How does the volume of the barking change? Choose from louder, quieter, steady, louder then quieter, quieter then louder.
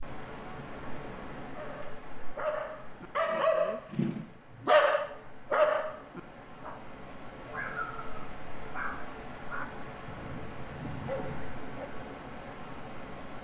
louder then quieter.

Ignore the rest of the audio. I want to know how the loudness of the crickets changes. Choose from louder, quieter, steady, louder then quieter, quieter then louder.
quieter then louder.